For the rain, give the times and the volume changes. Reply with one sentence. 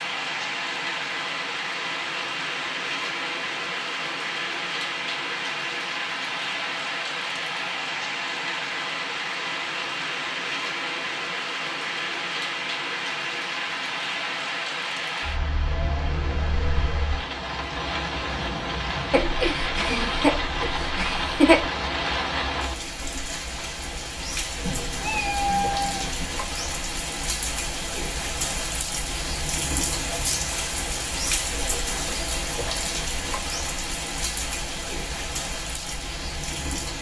The rain can be heard from 0.0 to 36.9 s, at a steady volume.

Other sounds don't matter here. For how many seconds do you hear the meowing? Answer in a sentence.
The meowing can be heard for 2 seconds in total.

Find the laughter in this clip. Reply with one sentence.
You can hear the laughter from 19.1 to 21.6 s.